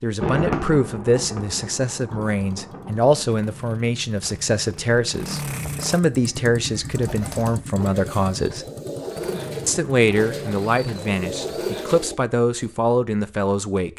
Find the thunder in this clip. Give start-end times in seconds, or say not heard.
0.2-3.3.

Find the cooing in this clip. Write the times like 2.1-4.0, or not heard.
6.1-12.7.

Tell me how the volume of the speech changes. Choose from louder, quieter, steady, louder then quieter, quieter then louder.
steady.